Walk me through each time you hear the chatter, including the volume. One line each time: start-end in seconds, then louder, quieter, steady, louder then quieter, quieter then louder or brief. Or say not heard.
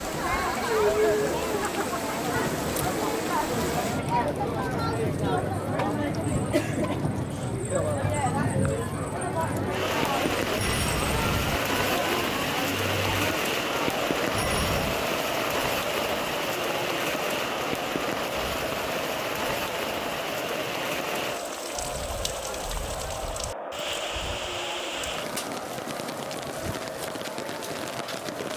0.0-28.5 quieter.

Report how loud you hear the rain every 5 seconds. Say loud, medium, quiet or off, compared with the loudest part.
medium, loud, loud, loud, medium, medium.